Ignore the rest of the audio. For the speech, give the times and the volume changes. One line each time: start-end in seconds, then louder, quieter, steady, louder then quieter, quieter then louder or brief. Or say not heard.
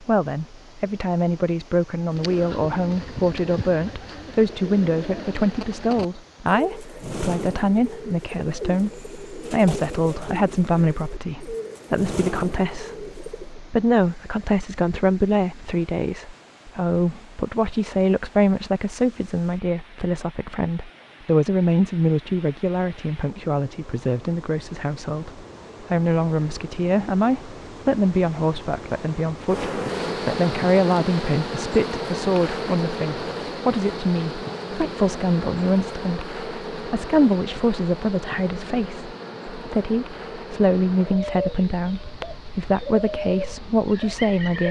0.0-44.6 steady.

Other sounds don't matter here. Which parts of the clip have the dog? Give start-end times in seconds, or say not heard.
not heard.